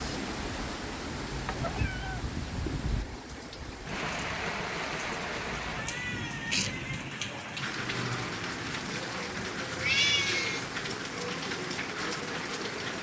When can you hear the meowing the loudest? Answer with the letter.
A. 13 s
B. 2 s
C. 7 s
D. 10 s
D.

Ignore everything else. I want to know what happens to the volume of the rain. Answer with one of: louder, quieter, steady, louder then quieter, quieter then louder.
steady.